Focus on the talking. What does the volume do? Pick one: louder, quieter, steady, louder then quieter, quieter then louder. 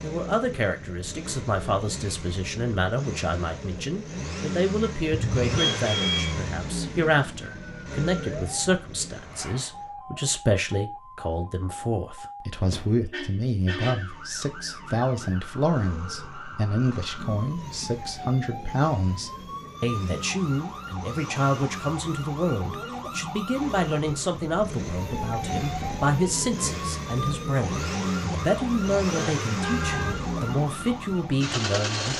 steady.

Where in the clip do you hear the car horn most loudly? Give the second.
6 s.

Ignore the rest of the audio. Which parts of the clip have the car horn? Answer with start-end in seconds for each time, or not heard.
5.1-6.4, 13.1-14.2, 29.6-30.3.